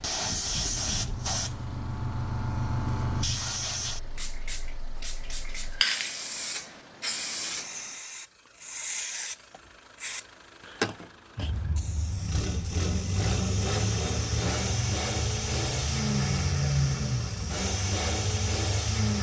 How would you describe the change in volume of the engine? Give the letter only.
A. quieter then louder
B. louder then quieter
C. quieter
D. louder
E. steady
D.